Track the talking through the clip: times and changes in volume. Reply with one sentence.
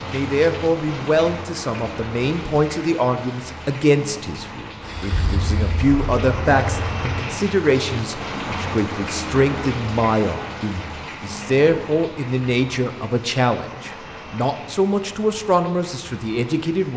The talking can be heard from 0.0 to 16.9 s, at a steady volume.